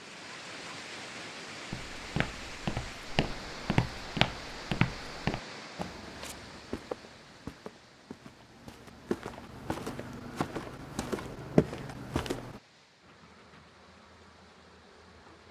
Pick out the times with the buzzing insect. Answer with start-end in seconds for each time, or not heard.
13.0-15.4.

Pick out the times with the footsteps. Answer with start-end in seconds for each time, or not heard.
1.7-12.6.